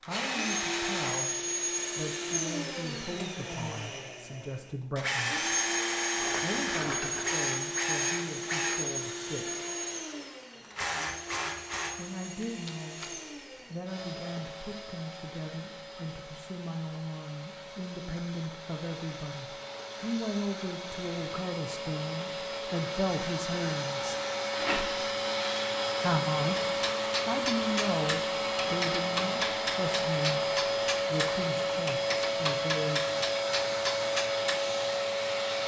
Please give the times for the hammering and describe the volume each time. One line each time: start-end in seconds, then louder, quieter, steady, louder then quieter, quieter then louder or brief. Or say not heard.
26.6-34.6 steady.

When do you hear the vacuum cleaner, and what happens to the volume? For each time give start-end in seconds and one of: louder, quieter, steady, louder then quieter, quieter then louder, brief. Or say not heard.
0.0-35.6 quieter then louder.